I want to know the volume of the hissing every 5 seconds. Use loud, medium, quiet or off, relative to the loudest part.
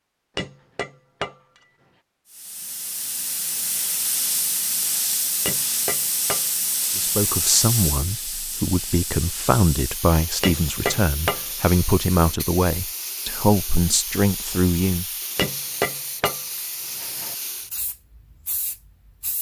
loud, loud, medium, medium.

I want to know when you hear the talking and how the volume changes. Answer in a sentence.
The talking can be heard from 7.0 to 15.1 s, at a steady volume.